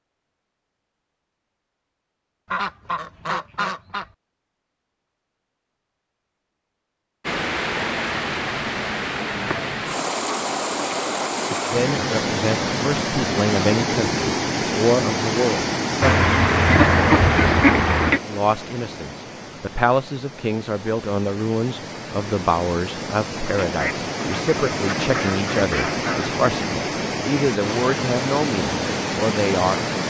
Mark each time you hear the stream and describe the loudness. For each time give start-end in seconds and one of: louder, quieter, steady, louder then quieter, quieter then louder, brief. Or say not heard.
7.2-30.0 quieter then louder.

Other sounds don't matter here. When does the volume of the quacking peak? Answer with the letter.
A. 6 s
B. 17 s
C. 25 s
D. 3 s
B.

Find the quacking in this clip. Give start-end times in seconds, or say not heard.
2.5-4.0, 16.0-18.2, 23.6-26.4.